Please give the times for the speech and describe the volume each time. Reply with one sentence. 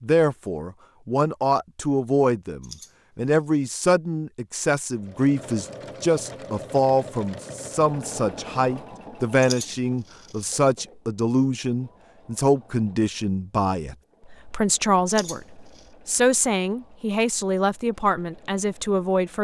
The speech can be heard from 0.0 to 19.3 s, at a steady volume.